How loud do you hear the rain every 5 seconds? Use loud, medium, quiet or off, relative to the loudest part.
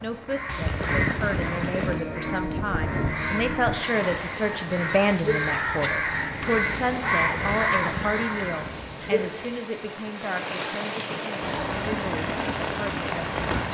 loud, medium, loud.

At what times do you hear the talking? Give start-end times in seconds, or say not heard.
0.0-13.4.